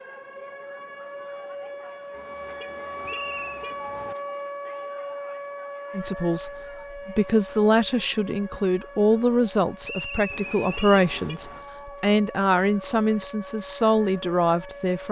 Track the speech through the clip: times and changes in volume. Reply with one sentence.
The speech can be heard from 5.9 to 15.0 s, at a steady volume.